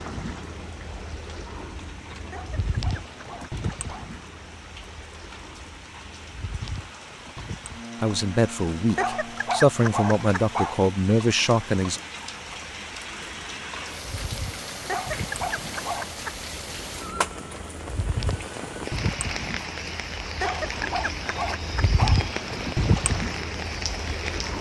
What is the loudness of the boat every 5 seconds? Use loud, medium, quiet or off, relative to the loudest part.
medium, medium, quiet, medium, loud.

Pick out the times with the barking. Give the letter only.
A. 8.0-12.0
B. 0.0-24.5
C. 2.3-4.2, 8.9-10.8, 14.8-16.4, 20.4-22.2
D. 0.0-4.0
C.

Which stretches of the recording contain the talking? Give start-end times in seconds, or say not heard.
8.0-12.0.